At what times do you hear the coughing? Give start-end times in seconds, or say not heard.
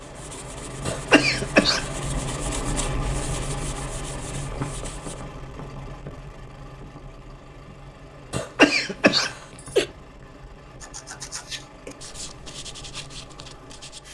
0.8-1.9, 8.3-9.8.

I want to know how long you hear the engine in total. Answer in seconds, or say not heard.
14 s.